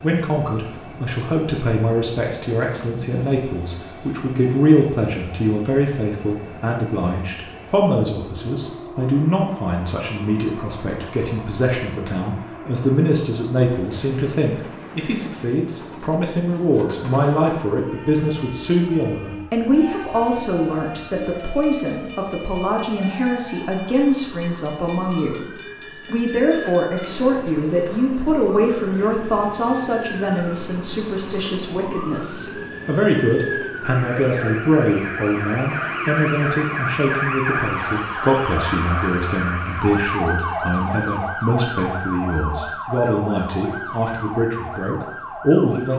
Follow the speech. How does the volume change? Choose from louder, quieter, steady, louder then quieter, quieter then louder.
steady.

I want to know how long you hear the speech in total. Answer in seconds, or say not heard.
45 s.